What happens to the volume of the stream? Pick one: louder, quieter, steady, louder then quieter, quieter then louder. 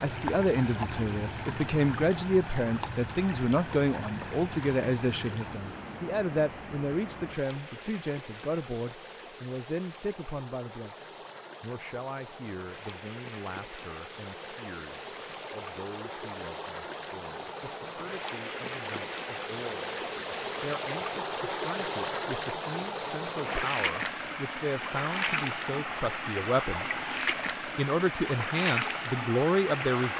quieter then louder.